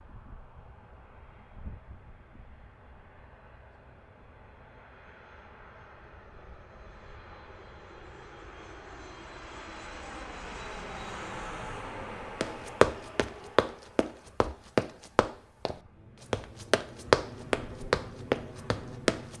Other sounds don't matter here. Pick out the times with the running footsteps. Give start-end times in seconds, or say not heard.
12.4-19.3.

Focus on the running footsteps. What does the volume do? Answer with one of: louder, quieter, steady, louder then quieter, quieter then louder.
quieter then louder.